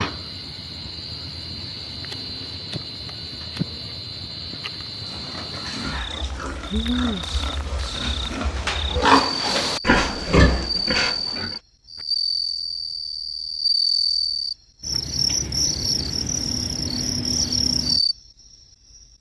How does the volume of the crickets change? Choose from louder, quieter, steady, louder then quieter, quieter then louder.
louder.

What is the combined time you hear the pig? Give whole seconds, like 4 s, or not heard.
7 s.